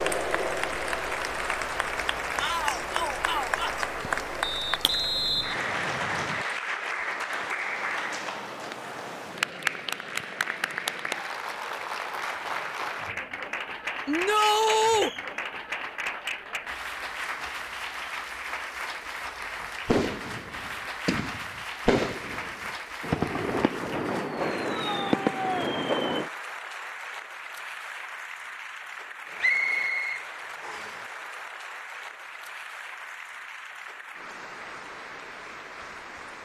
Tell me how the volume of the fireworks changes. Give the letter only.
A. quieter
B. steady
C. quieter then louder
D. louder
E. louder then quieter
D.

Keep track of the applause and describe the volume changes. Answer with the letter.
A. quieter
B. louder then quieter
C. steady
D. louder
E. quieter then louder
A.